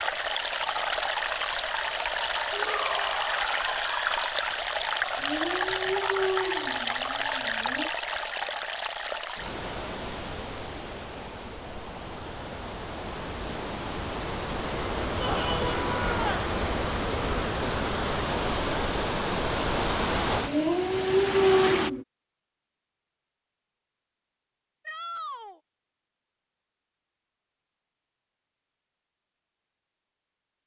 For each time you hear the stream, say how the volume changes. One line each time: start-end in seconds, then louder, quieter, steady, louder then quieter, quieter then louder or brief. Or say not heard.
0.0-21.9 quieter then louder.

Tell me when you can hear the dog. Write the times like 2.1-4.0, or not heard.
5.2-7.9, 20.4-22.1.